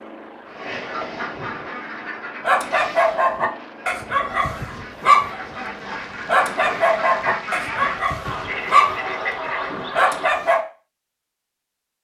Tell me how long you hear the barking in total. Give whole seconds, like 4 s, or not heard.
8 s.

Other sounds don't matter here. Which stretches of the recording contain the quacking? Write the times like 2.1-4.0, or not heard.
0.5-10.2.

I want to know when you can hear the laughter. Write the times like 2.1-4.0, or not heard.
not heard.